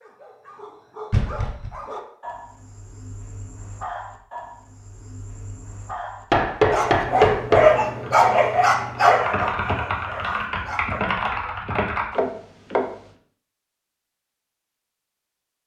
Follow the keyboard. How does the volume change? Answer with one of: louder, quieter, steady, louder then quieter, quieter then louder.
louder.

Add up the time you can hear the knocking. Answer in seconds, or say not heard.
3 s.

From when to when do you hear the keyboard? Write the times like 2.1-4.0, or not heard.
7.8-12.2.